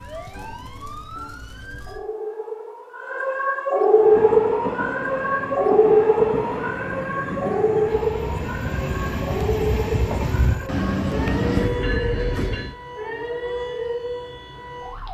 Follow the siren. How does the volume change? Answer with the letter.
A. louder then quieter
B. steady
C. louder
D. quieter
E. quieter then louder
A.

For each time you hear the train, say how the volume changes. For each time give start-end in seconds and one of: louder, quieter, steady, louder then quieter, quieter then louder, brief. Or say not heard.
4.0-12.8 louder.